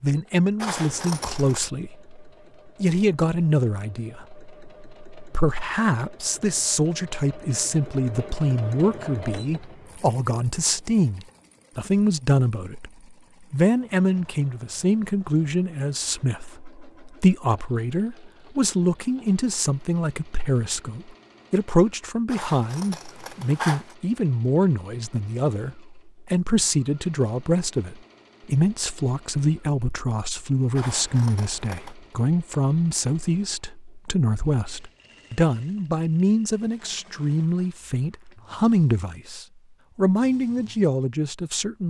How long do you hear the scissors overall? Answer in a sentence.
You can hear the scissors for 4 seconds altogether.